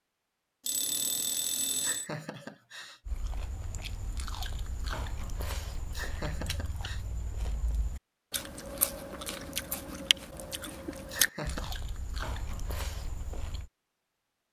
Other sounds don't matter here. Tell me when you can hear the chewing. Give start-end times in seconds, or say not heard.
3.0-13.7.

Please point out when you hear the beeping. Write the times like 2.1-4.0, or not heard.
0.7-2.1.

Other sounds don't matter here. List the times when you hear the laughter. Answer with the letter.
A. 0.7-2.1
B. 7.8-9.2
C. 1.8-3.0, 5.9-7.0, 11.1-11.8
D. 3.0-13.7
C.